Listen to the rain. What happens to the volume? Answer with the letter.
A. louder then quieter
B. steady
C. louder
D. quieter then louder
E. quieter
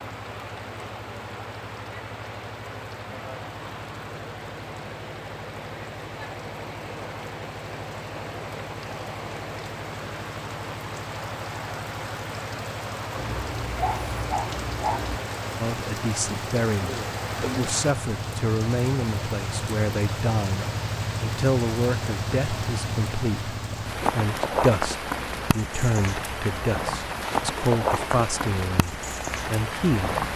C.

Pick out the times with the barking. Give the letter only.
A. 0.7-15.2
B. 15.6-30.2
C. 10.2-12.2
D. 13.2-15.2
D.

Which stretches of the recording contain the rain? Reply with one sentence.
The rain can be heard from 0.0 to 30.3 s.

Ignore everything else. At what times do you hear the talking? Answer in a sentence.
The talking can be heard from 15.6 to 30.2 s.